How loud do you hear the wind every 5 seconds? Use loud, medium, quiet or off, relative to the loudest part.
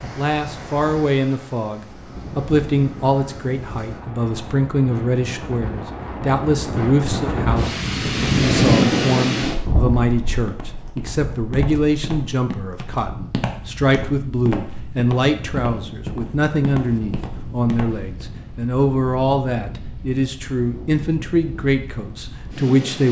quiet, loud, quiet, quiet, quiet.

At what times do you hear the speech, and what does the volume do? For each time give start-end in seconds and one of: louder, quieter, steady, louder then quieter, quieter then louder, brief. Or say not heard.
0.0-23.0 steady.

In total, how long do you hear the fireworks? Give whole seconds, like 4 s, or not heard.
not heard.